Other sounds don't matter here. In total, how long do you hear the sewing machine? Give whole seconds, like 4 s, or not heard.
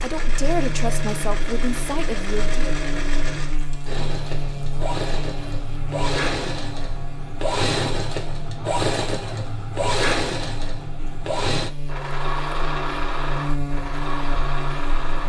15 s.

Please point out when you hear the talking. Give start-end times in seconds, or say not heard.
0.0-2.5.